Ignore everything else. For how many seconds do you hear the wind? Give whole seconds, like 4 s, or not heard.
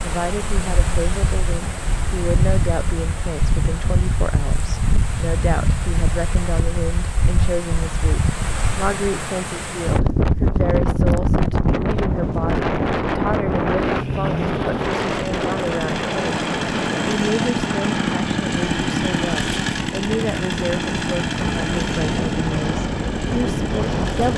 24 s.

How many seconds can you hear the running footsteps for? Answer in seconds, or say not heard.
not heard.